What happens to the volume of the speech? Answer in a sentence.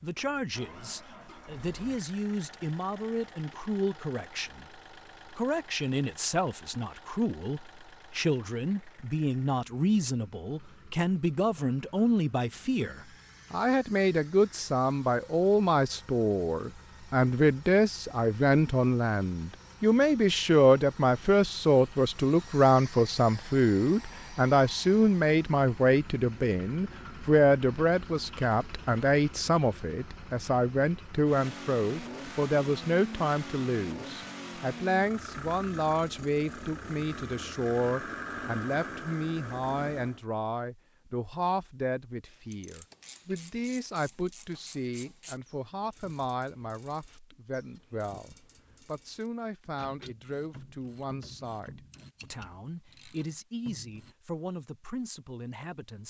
The volume of the speech goes up, then down.